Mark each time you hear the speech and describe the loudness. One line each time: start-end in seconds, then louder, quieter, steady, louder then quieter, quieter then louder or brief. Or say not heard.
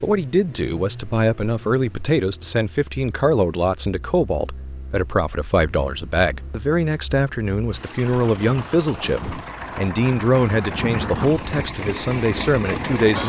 0.0-13.2 steady.